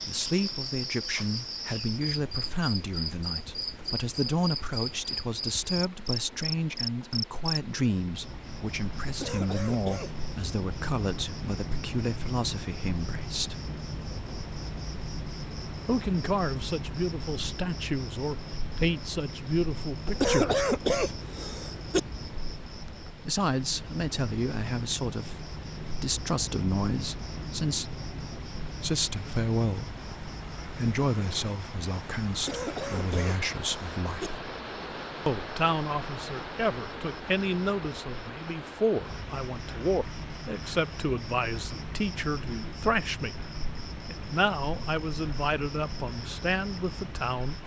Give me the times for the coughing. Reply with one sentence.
The coughing can be heard from 9.1 to 10.2 s, from 20.1 to 22.0 s and from 32.3 to 34.3 s.